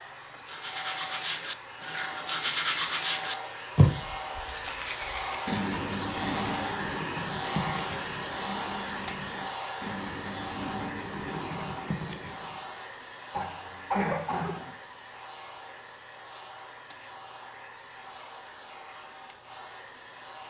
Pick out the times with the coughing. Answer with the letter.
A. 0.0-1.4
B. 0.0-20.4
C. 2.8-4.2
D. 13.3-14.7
D.